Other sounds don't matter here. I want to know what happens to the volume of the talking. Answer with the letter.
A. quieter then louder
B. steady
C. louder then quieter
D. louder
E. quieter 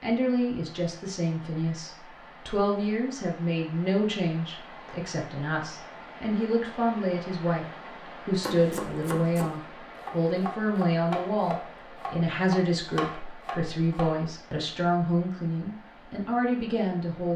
B.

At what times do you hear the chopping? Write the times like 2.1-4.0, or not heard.
8.3-14.2.